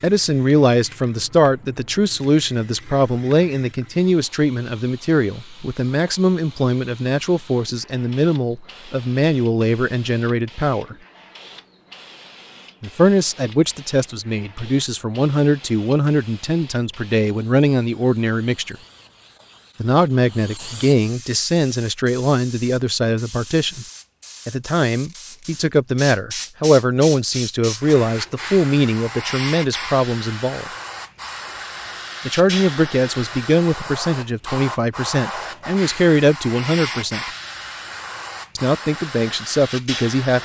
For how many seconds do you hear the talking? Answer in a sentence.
You can hear the talking for 34 seconds altogether.